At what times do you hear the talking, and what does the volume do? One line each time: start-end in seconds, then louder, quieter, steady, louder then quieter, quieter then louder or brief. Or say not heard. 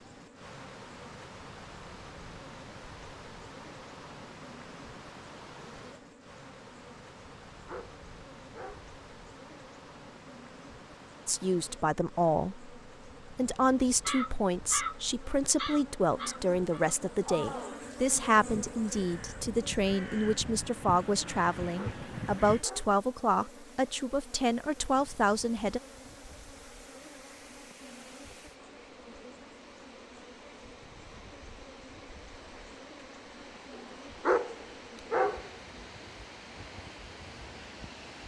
11.2-25.8 steady.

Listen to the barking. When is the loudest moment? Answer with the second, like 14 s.
34 s.